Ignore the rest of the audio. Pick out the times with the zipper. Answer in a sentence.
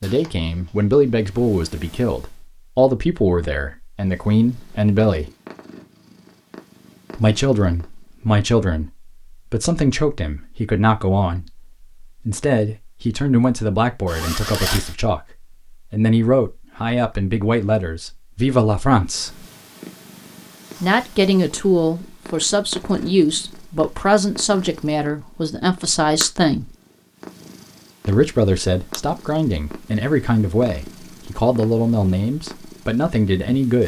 You can hear the zipper from 14.1 to 14.9 s.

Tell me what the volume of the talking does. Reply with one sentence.
The loudness of the talking stays about the same.